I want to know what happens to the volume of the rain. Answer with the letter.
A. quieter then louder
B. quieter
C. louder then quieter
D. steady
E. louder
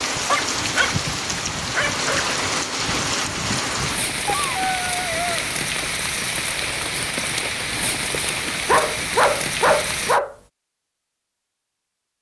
D.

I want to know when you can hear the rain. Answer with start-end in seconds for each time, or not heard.
0.0-10.2.